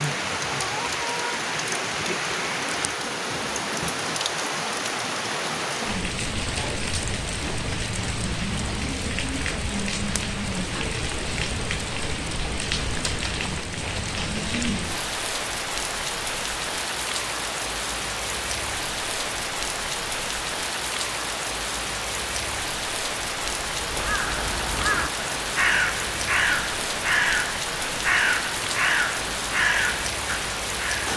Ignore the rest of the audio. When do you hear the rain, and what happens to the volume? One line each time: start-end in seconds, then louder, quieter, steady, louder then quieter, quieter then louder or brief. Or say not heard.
0.0-31.1 steady.